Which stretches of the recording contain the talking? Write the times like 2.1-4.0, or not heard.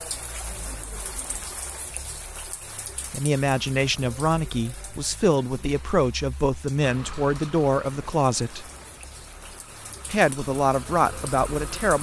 3.1-8.7, 10.1-11.9.